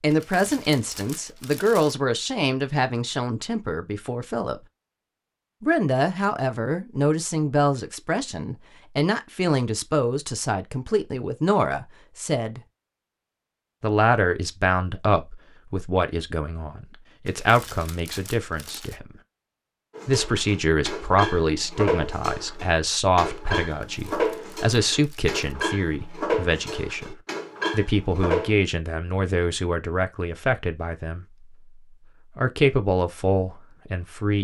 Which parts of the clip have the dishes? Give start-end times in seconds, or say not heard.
19.9-28.6.